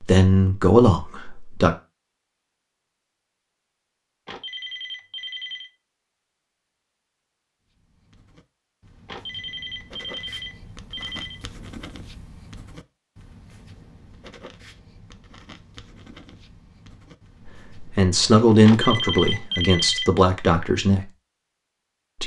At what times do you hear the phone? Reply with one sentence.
You can hear the phone from 4.2 to 5.7 s, from 9.1 to 11.4 s and from 18.6 to 20.1 s.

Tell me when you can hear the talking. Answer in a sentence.
The talking can be heard from 0.0 to 1.8 s and from 17.7 to 21.1 s.